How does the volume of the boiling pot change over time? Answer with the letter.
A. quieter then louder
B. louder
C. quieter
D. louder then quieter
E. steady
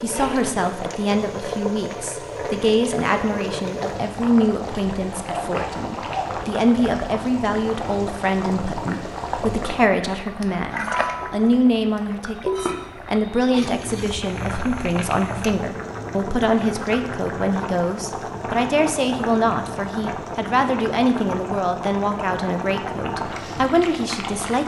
E.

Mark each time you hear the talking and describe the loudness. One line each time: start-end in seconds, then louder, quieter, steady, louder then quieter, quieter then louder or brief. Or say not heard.
0.0-24.6 steady.